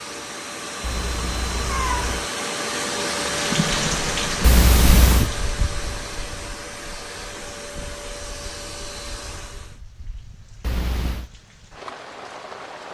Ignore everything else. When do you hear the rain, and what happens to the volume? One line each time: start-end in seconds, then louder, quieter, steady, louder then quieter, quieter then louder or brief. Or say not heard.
3.3-12.8 quieter then louder.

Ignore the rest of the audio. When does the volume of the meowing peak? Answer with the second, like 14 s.
5 s.